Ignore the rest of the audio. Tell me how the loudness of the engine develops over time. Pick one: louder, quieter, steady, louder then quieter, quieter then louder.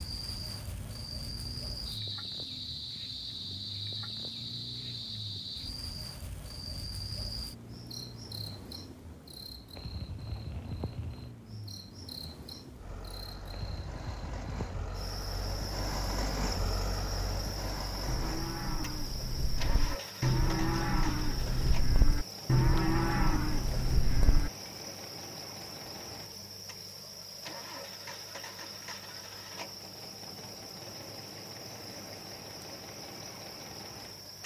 louder then quieter.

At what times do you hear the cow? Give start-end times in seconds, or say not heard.
18.1-24.5.